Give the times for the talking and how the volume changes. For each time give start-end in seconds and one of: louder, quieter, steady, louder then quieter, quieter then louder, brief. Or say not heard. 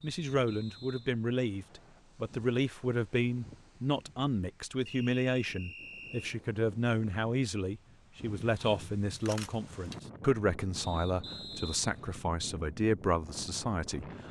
0.0-14.1 steady.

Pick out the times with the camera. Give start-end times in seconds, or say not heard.
9.1-10.1.